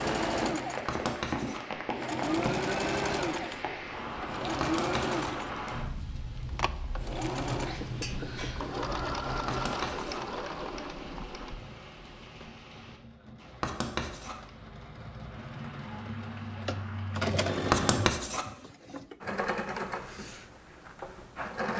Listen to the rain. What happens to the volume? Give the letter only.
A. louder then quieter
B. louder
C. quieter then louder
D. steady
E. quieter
E.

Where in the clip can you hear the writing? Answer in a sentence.
You can hear the writing from 0.8 to 1.6 s, from 4.6 to 5.1 s, from 9.4 to 10.2 s, from 13.6 to 14.3 s and from 17.7 to 18.4 s.